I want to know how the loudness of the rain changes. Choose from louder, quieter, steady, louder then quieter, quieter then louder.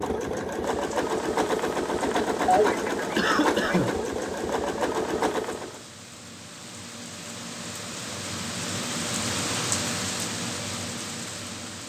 louder.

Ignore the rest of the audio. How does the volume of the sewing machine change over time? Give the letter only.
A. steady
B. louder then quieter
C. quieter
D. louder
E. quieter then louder
A.